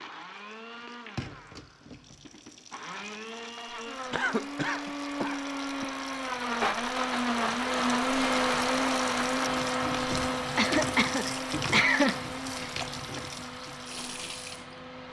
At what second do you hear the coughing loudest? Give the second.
12 s.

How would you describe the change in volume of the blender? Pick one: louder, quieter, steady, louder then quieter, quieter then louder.
louder then quieter.